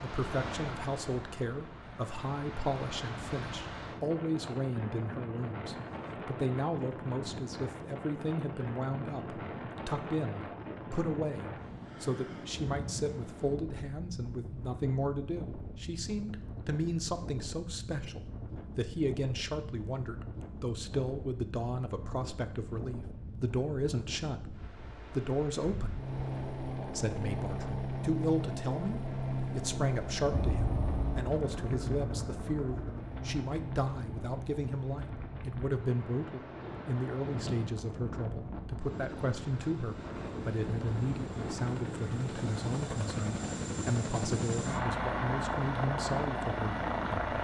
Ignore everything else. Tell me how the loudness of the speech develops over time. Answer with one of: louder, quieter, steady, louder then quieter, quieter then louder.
steady.